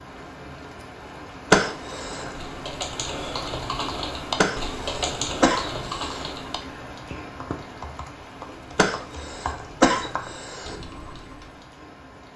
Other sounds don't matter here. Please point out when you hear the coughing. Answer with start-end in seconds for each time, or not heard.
1.5-2.3, 4.3-6.2, 8.8-10.8.